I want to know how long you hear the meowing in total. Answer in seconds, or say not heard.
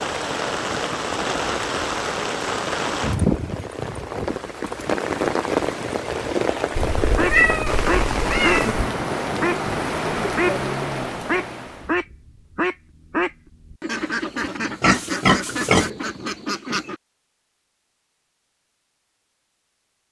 2 s.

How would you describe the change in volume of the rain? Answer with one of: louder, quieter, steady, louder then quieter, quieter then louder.
steady.